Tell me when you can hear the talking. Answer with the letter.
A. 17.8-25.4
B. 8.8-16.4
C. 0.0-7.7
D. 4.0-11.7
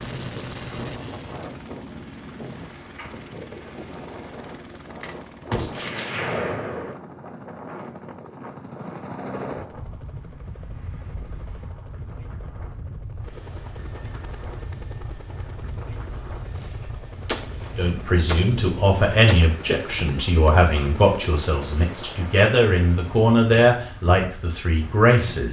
A.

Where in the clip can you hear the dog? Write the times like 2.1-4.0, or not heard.
not heard.